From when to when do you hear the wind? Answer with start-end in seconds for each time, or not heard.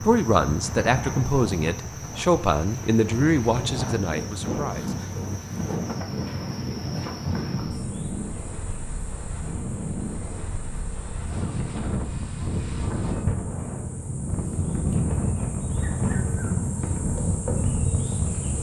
0.0-18.5.